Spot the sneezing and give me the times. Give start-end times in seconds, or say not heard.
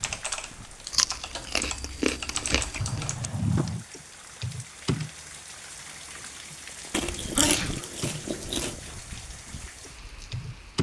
2.8-3.9, 6.8-7.8.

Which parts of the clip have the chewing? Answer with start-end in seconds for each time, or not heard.
0.9-3.1, 6.9-8.8.